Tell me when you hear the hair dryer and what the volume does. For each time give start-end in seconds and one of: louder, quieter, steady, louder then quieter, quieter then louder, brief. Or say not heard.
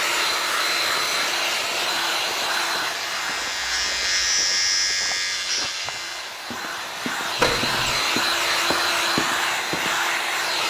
0.0-10.6 quieter then louder.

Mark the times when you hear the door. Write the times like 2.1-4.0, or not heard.
7.3-8.0.